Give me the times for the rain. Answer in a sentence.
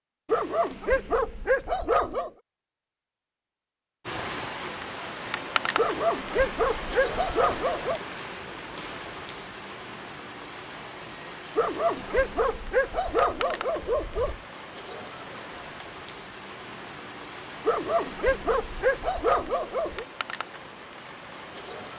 The rain can be heard from 4.0 to 21.9 s.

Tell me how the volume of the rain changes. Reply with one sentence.
The volume of the rain goes down.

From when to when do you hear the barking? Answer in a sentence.
The barking can be heard from 0.2 to 2.3 s, from 5.8 to 8.0 s, from 11.6 to 14.4 s and from 17.6 to 20.1 s.